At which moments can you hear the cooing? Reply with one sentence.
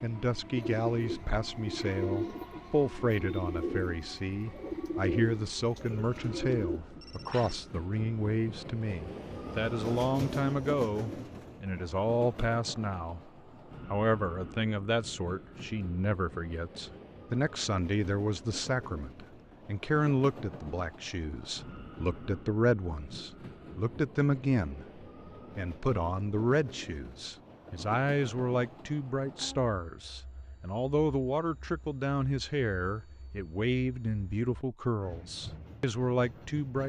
You can hear the cooing from 0.6 to 6.8 s.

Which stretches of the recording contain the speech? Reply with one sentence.
You can hear the speech from 0.0 to 13.3 s and from 13.9 to 36.8 s.